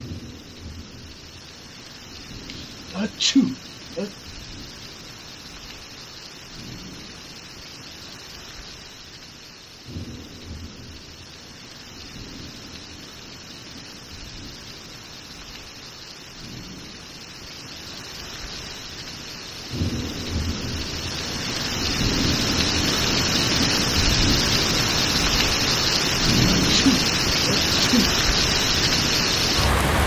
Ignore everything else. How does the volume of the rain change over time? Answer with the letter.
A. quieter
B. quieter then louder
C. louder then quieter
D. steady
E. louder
E.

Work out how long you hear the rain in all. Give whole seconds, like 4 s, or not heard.
30 s.